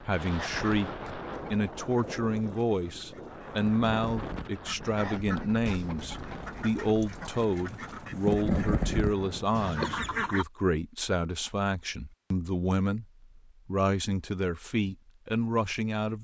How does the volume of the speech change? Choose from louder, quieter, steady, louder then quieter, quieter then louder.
steady.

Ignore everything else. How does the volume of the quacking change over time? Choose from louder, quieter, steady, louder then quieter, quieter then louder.
louder.